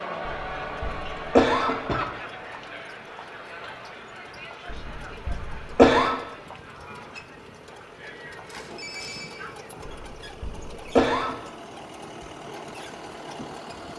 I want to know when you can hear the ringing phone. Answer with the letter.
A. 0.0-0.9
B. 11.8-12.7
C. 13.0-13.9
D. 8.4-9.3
D.